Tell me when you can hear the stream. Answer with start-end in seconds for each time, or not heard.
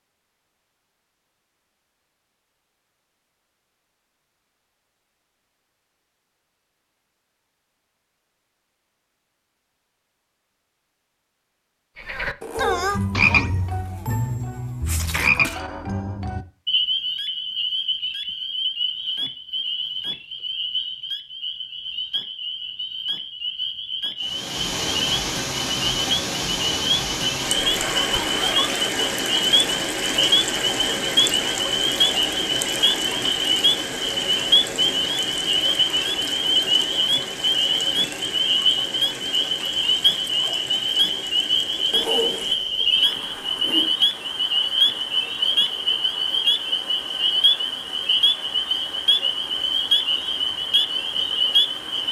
24.2-52.0.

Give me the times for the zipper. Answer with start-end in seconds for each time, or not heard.
12.4-13.8, 27.8-28.9, 41.9-43.9.